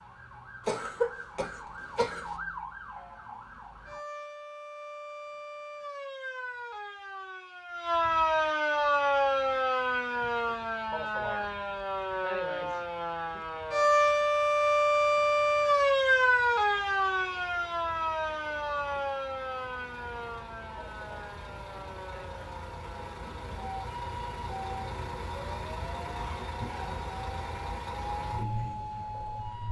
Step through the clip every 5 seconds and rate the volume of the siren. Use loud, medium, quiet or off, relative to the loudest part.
quiet, loud, loud, loud, quiet, quiet.